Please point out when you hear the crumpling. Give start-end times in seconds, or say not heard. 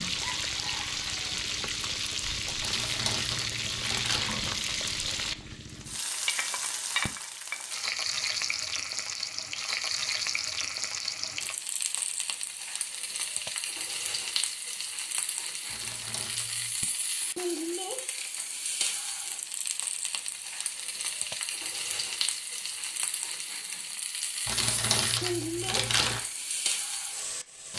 2.6-4.3, 15.7-16.8, 24.4-26.2.